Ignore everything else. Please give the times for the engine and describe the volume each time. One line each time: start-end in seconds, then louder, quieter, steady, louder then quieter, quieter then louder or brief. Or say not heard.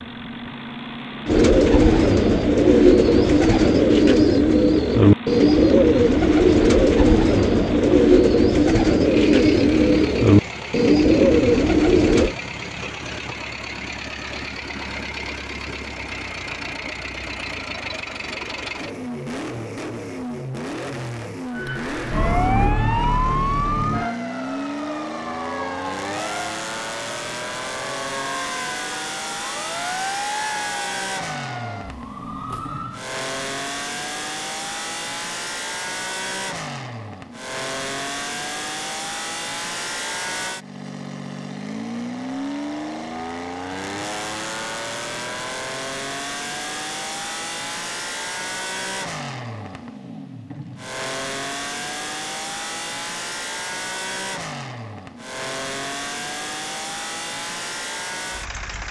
0.0-58.8 steady.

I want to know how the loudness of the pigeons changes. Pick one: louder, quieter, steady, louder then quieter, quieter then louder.
steady.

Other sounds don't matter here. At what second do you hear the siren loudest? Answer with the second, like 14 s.
23 s.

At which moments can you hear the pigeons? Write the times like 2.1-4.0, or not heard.
1.2-12.3.